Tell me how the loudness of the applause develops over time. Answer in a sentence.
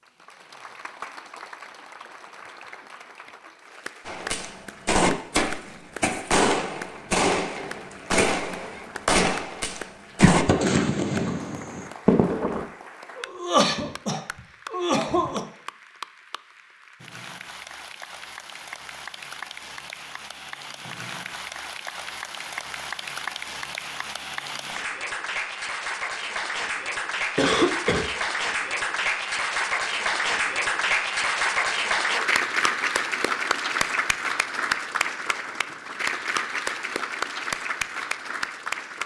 The volume of the applause goes up.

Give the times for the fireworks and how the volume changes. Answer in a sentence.
You can hear the fireworks from 4.0 to 12.7 s, at a steady volume.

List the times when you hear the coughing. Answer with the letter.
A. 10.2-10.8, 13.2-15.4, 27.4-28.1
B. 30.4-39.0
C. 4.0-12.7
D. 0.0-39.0
A.